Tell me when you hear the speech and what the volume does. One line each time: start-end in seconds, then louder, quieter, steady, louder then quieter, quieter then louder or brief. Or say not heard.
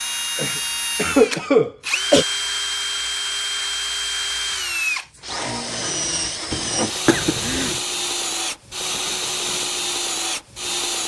not heard.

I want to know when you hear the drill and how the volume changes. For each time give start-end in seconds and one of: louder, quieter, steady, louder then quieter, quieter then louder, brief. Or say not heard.
0.0-11.0 steady.